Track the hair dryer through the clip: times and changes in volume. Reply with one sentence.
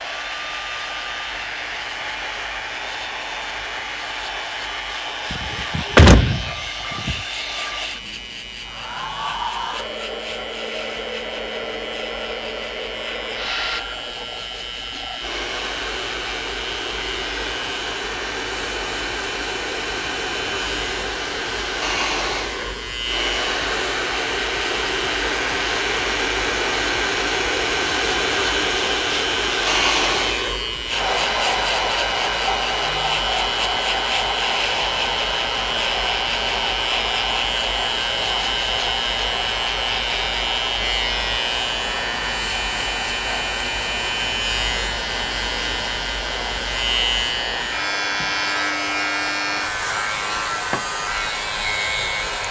The hair dryer can be heard from 0.0 to 52.4 s, getting louder then quieter.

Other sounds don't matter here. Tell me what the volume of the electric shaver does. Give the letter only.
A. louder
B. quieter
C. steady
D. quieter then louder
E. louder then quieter
A.